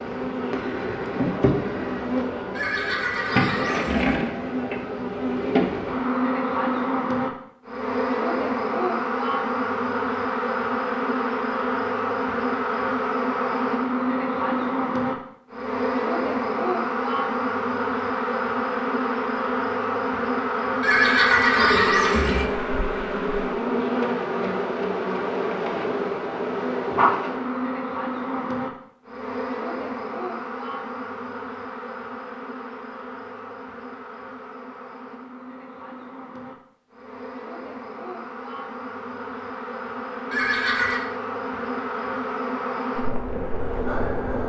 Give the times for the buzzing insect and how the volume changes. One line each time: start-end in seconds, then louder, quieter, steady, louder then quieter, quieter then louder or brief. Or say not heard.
0.0-44.4 quieter.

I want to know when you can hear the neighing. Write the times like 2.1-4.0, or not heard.
2.5-4.2, 20.8-22.4, 40.3-41.0.